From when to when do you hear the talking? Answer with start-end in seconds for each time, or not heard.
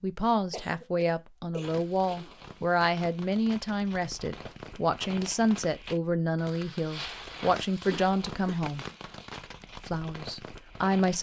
0.0-8.8, 9.8-11.1.